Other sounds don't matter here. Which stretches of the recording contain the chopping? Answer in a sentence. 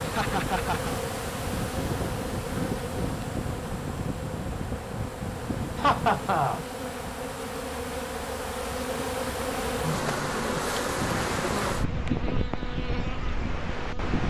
The chopping can't be heard in this clip.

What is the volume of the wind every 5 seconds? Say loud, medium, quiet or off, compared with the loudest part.
loud, medium, loud.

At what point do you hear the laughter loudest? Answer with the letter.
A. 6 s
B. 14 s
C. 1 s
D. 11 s
A.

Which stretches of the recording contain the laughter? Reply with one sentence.
The laughter can be heard from 0.0 to 0.9 s, from 5.8 to 6.7 s and from 9.8 to 10.5 s.